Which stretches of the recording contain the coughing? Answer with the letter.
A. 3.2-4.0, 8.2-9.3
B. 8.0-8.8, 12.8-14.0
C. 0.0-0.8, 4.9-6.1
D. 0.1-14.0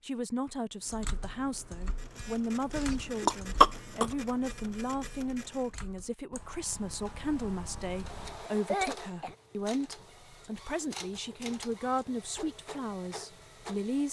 A.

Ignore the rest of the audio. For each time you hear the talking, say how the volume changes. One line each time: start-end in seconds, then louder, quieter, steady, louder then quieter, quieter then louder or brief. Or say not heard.
0.1-14.0 steady.